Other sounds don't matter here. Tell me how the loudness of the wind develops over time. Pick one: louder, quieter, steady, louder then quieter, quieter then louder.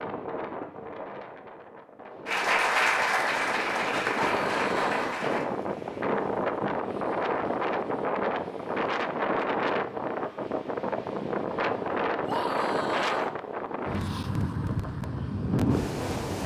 louder.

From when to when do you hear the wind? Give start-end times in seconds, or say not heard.
0.0-16.4.